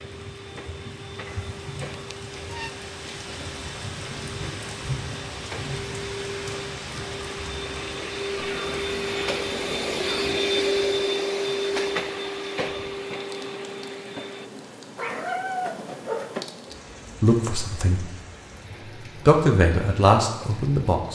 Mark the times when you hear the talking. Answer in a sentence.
You can hear the talking from 17.2 to 18.1 s and from 19.1 to 21.1 s.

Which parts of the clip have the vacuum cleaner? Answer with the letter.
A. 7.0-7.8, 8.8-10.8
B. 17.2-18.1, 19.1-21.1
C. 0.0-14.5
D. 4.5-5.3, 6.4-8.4
C.